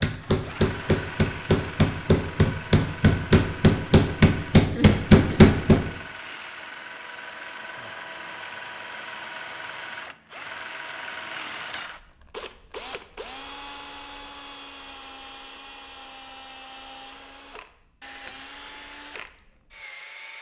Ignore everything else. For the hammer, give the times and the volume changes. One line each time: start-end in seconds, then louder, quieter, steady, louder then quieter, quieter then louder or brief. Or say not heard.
0.0-5.8 louder.